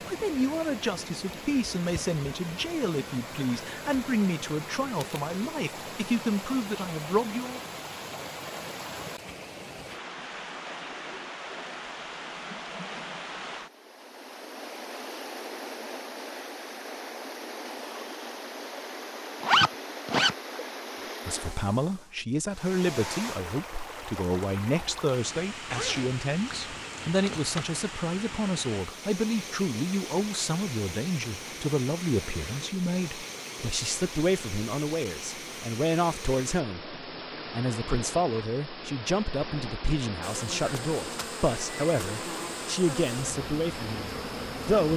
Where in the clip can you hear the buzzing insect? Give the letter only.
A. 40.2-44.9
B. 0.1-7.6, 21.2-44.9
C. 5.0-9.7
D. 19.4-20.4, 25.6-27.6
A.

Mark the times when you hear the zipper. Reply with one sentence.
You can hear the zipper from 19.4 to 20.4 s and from 25.6 to 27.6 s.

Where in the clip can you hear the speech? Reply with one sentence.
You can hear the speech from 0.1 to 7.6 s and from 21.2 to 44.9 s.